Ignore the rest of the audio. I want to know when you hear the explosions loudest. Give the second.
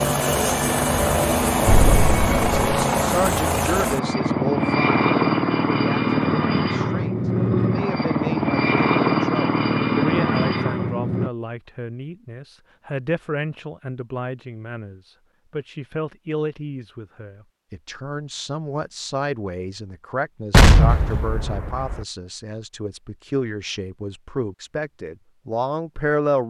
21 s.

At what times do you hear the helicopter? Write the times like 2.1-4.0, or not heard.
0.0-11.3.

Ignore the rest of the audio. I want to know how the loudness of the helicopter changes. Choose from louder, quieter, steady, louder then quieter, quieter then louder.
steady.